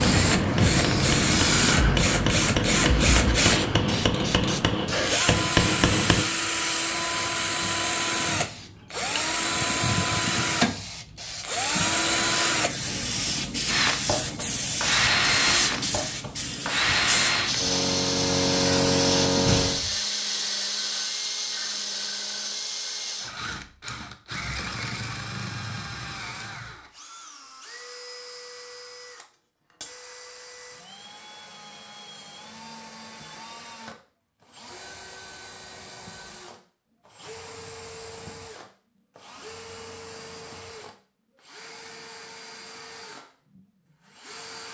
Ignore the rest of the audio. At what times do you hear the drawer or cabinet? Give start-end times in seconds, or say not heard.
19.4-19.9.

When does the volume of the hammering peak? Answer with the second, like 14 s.
6 s.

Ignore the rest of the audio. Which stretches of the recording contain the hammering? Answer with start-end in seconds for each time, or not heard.
0.2-6.2.